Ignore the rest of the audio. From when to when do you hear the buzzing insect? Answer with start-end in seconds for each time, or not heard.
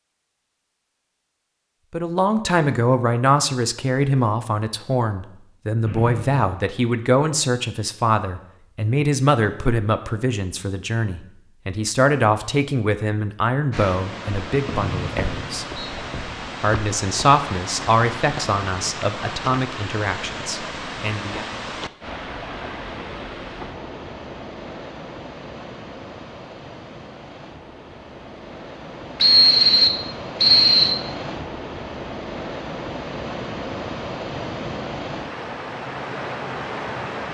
not heard.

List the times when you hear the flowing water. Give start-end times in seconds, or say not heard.
13.7-37.2.